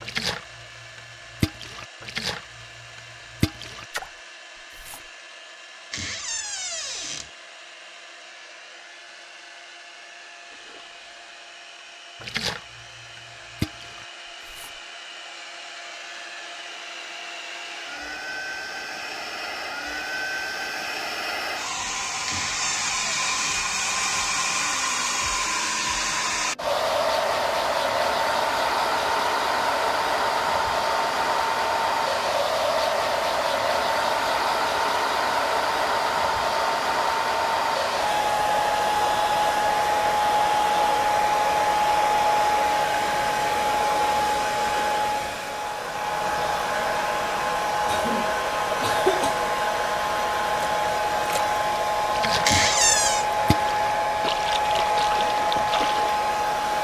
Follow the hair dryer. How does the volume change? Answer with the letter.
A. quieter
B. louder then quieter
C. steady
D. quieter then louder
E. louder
E.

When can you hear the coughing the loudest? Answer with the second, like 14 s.
49 s.